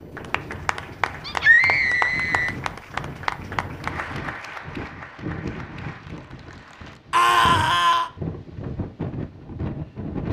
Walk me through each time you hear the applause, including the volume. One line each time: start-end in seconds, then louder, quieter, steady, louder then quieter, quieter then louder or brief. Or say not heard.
0.0-7.0 quieter.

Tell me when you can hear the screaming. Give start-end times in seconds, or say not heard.
1.2-2.5, 7.1-8.1.